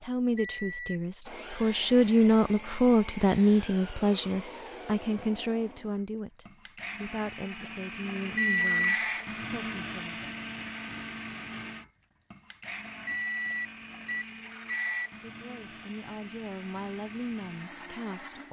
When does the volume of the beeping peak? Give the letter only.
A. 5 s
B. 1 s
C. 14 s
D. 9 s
D.